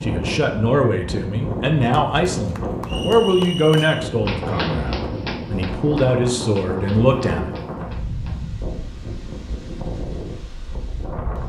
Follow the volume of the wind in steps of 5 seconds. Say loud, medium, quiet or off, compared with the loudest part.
loud, loud, medium.